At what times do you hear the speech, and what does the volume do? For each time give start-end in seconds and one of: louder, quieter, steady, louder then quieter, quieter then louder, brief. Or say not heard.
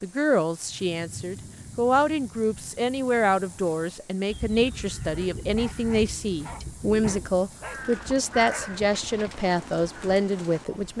0.0-10.9 steady.